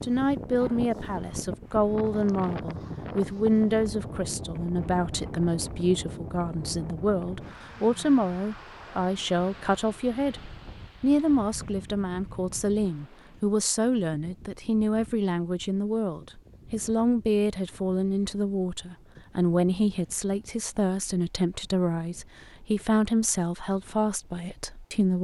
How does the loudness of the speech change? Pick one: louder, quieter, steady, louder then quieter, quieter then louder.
steady.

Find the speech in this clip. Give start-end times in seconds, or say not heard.
0.0-25.1.